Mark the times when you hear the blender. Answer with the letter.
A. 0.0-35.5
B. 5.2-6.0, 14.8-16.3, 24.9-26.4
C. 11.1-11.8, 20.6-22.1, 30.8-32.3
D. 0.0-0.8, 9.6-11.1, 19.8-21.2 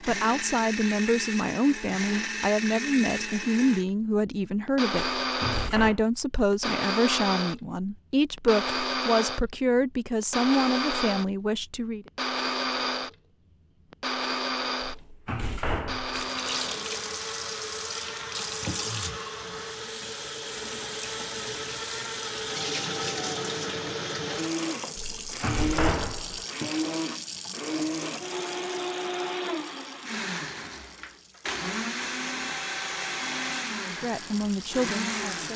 A.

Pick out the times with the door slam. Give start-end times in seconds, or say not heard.
5.2-6.0, 14.8-16.3, 24.9-26.4.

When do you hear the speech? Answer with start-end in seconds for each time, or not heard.
0.0-12.1, 33.9-35.5.